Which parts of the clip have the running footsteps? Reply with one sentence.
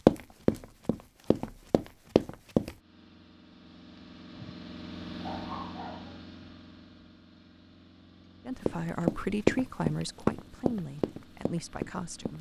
You can hear the running footsteps from 0.1 to 2.8 s and from 8.7 to 12.3 s.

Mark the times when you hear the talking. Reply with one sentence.
The talking can be heard from 8.4 to 12.3 s.